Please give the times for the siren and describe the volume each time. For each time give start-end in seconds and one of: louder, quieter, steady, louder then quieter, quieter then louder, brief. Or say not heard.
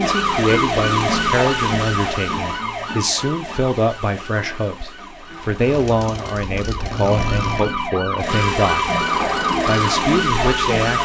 0.0-10.9 quieter then louder.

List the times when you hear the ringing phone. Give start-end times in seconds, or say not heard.
not heard.